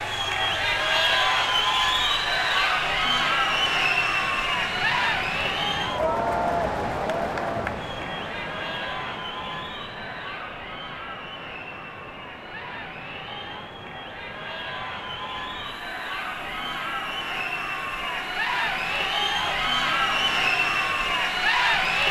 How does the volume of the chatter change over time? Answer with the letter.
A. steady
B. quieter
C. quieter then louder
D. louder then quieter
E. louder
C.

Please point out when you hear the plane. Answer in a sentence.
You can't hear the plane here.